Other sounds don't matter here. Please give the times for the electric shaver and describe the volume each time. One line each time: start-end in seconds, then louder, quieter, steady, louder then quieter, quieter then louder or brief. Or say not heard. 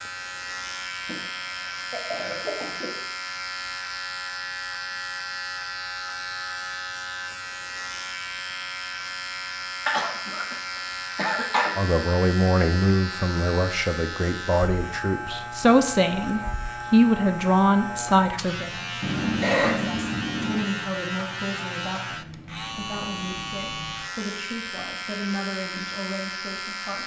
0.0-27.0 steady.